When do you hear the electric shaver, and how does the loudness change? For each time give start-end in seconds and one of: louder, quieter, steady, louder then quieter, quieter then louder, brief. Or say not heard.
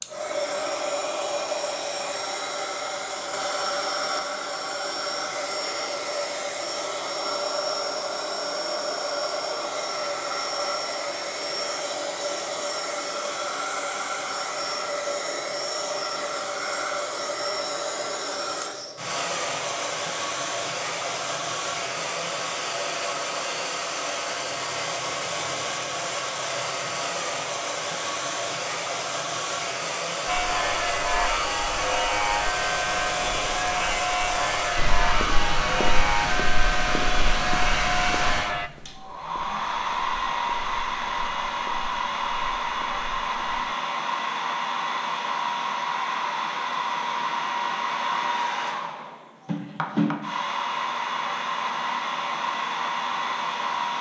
30.2-38.7 steady.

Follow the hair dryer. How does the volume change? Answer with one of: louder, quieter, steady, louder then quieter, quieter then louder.
steady.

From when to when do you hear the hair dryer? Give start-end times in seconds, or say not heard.
0.0-53.9.